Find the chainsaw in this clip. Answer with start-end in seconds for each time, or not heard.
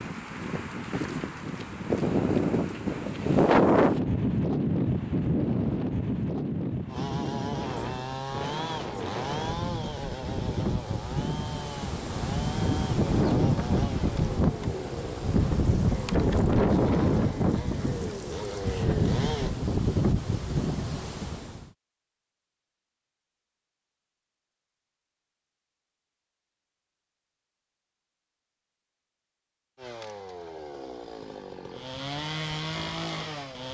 6.8-19.6, 29.8-33.7.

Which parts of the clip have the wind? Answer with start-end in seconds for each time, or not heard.
0.0-21.6.